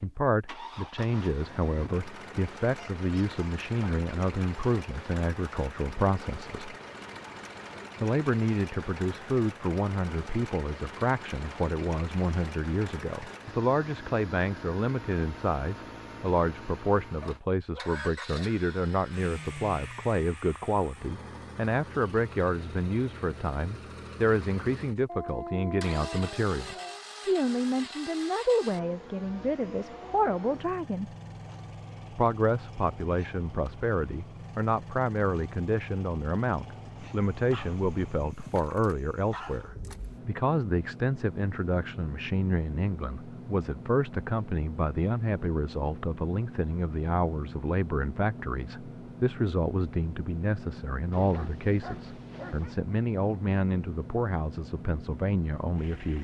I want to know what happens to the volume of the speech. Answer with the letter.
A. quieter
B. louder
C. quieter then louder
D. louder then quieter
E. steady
E.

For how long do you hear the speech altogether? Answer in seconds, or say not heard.
54 s.